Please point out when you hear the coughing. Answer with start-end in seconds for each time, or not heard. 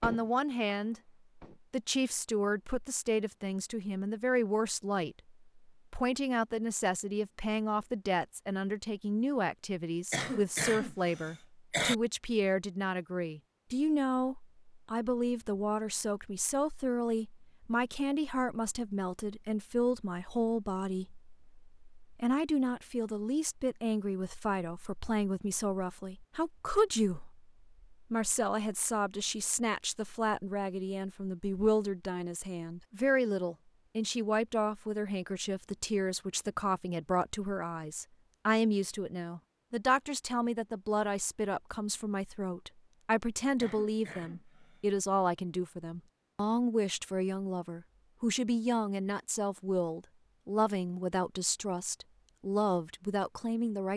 10.1-11.9, 43.6-44.9.